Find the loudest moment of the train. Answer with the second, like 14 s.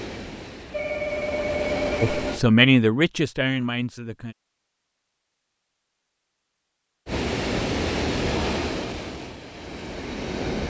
8 s.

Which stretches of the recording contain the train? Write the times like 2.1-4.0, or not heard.
0.0-2.5, 7.0-10.6.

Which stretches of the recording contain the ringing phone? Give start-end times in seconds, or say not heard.
0.7-2.4.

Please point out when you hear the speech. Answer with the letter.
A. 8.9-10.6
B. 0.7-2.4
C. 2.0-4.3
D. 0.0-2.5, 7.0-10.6
C.